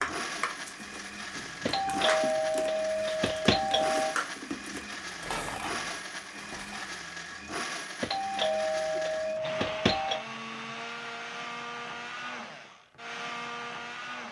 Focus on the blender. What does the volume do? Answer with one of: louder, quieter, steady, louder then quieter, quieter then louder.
steady.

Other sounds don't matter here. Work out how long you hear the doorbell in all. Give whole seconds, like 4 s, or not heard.
5 s.